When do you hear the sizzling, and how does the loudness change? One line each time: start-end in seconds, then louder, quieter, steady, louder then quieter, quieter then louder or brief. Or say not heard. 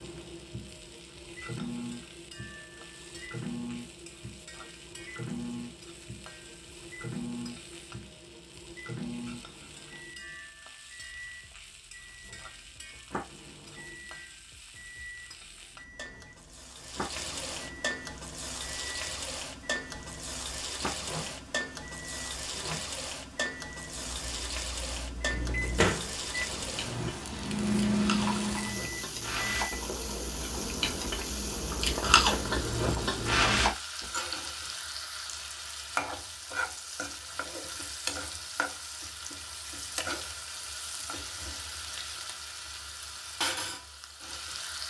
0.0-44.8 louder.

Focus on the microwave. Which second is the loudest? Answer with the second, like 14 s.
28 s.